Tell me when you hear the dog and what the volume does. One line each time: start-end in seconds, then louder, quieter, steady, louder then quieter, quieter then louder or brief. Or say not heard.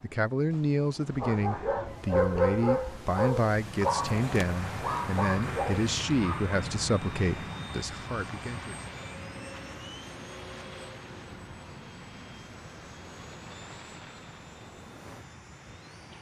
1.1-6.5 quieter.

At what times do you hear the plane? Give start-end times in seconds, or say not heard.
3.5-16.1.